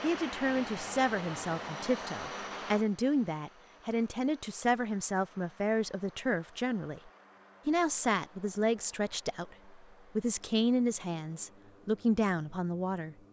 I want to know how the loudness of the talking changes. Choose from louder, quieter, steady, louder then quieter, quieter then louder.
steady.